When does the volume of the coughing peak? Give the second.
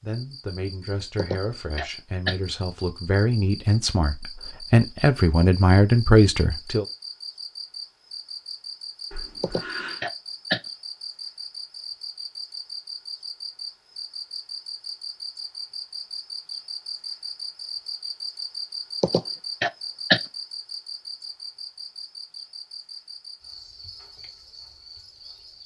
20 s.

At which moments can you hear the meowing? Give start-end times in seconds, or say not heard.
9.1-10.1.